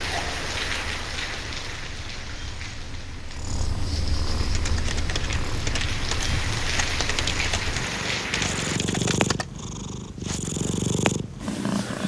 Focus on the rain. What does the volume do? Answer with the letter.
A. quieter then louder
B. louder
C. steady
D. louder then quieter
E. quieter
A.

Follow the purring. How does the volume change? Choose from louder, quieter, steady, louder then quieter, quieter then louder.
louder.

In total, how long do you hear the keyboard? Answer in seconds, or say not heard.
5 s.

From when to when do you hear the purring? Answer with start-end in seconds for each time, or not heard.
0.2-12.0.